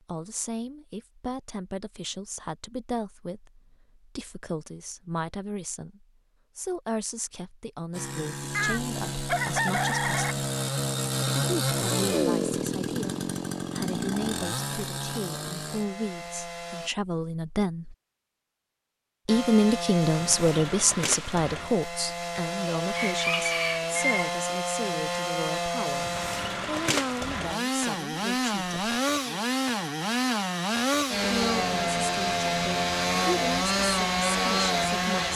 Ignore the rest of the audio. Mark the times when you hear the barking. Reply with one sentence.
You can't hear the barking here.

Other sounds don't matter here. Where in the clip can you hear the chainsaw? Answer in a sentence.
You can hear the chainsaw from 7.9 to 16.9 s and from 19.2 to 35.3 s.